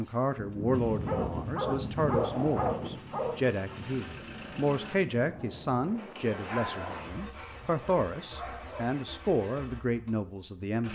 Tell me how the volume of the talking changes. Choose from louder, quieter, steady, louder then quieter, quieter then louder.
steady.